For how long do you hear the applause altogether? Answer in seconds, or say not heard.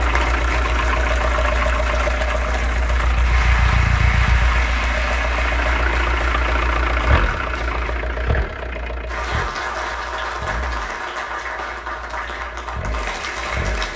14 s.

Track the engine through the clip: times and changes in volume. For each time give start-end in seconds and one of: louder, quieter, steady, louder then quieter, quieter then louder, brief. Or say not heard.
0.0-13.9 quieter.